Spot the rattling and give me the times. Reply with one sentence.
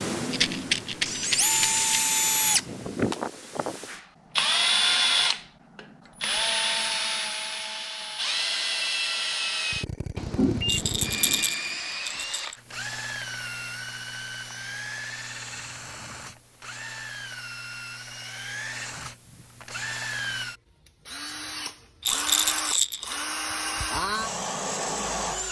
You can hear the rattling from 0.3 to 1.9 s, from 10.7 to 12.6 s and from 22.0 to 23.2 s.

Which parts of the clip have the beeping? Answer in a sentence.
You can hear the beeping from 10.2 to 11.4 s.